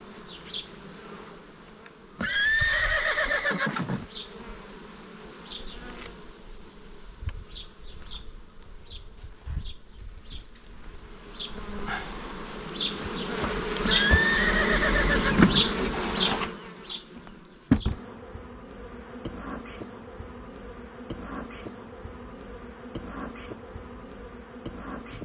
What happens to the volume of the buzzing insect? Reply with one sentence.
The loudness of the buzzing insect goes up, then down.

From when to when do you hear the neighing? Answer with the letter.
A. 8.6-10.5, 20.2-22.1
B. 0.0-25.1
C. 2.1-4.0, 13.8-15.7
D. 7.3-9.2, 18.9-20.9
C.